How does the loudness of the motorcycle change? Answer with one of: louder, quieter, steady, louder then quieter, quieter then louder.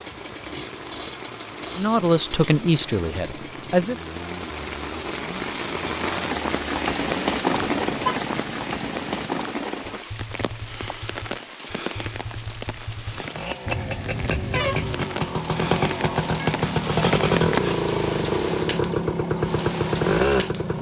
louder.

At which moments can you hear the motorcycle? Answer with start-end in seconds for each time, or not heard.
0.0-20.7.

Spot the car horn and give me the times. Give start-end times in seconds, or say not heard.
7.5-8.2, 13.7-15.1.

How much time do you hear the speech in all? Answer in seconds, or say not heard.
2 s.